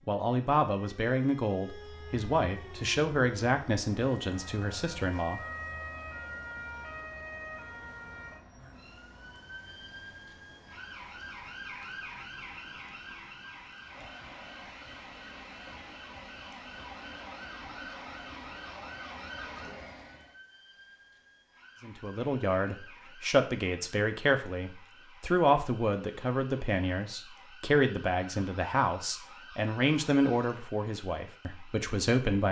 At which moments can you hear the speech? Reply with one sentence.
You can hear the speech from 0.1 to 5.4 s and from 21.8 to 32.4 s.